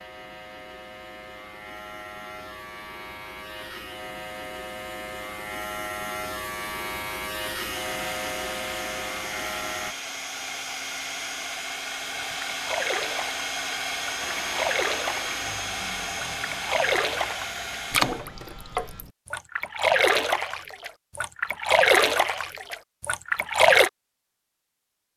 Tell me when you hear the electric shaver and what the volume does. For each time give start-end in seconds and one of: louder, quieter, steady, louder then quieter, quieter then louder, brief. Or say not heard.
0.0-9.9 louder
14.2-19.1 quieter.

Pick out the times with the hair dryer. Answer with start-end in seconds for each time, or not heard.
7.7-18.2.